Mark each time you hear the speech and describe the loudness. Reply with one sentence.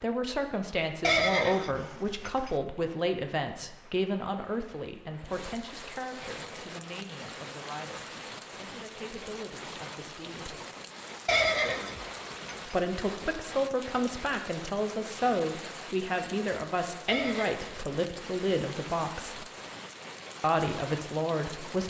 The speech can be heard from 0.0 to 10.6 s, getting quieter; from 12.7 to 19.4 s, at a steady volume; and briefly from 20.4 to 21.8 s.